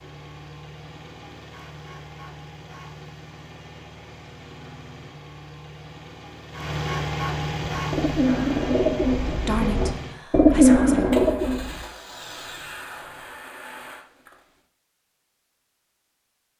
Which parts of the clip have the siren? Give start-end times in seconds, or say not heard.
not heard.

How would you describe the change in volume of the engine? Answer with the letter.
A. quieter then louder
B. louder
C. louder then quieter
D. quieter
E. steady
C.